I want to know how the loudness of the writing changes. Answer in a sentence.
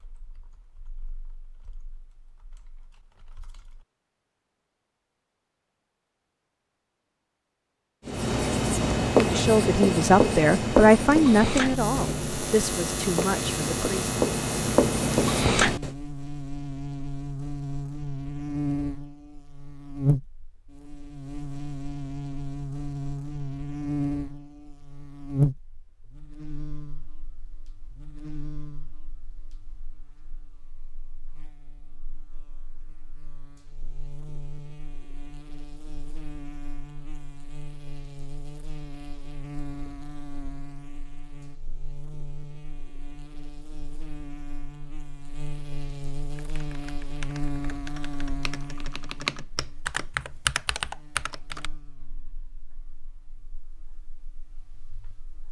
The loudness of the writing goes down, then up.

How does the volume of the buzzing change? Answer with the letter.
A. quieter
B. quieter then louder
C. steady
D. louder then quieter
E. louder
B.